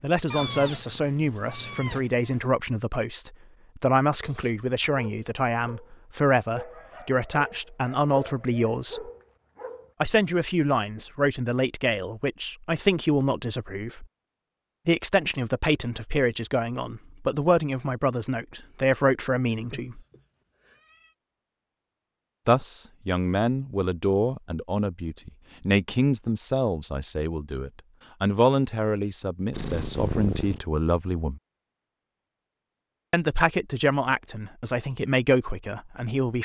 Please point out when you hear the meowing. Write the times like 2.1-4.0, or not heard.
0.3-2.5, 19.5-21.1, 29.5-30.6.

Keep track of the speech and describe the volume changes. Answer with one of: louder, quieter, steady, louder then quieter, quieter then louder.
steady.